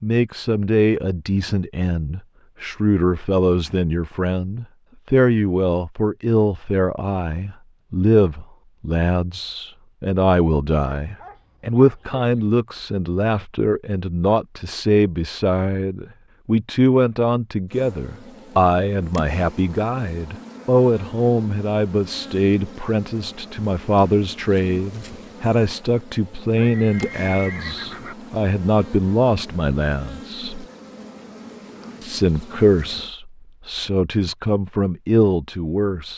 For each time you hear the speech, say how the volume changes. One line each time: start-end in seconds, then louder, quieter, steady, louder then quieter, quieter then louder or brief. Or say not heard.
0.0-30.6 steady
32.0-36.1 quieter then louder.